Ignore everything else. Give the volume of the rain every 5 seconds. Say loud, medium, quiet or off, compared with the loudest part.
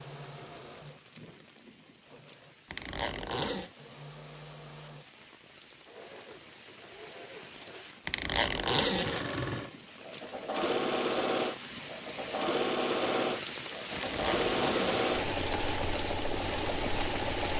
quiet, quiet, loud, loud.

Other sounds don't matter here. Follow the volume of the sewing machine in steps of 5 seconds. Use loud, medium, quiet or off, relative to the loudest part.
quiet, medium, loud, loud.